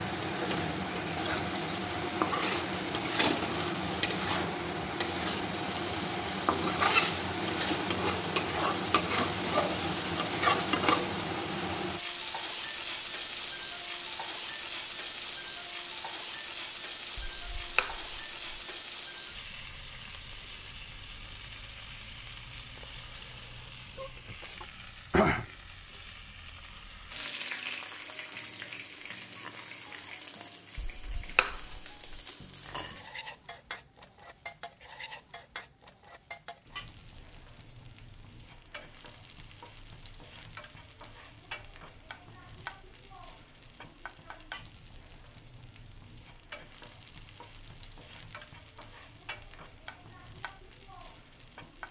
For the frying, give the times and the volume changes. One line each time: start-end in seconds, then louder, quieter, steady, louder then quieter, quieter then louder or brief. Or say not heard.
0.0-51.8 quieter.